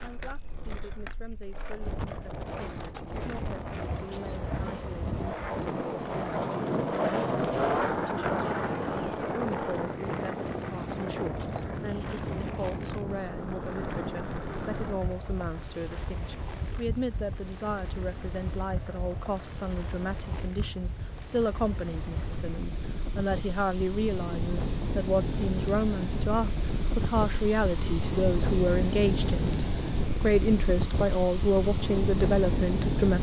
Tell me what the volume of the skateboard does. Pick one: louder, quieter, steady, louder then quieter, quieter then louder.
louder then quieter.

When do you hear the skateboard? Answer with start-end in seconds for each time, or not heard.
0.0-22.4.